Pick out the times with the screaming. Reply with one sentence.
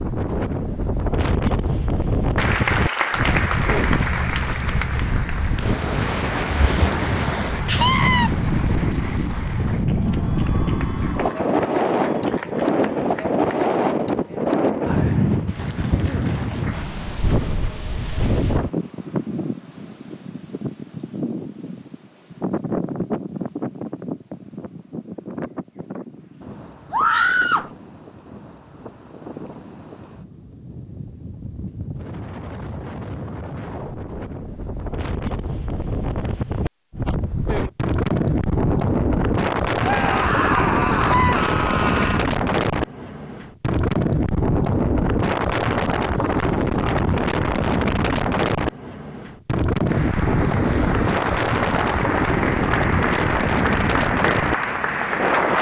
The screaming can be heard from 7.7 to 8.3 s, from 26.9 to 27.6 s and from 39.8 to 42.2 s.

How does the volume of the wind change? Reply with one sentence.
The loudness of the wind goes down, then up.